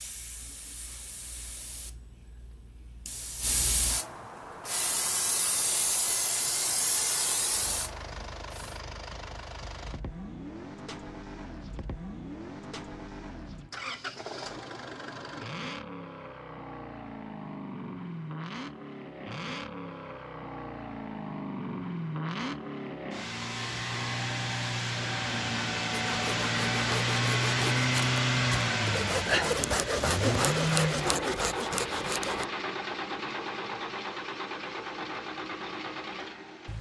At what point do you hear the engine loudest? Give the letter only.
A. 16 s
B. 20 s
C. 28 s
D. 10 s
C.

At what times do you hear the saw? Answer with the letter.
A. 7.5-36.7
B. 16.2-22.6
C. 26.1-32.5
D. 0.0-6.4
C.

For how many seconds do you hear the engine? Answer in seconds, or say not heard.
29 s.